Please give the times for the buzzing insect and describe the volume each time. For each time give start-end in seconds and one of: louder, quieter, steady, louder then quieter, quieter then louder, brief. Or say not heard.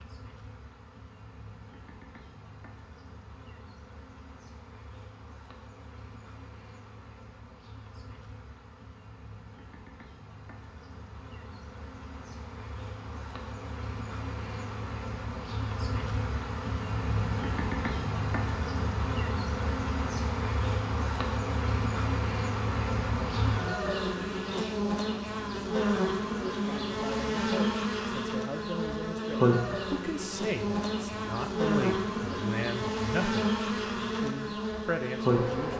0.0-35.7 louder.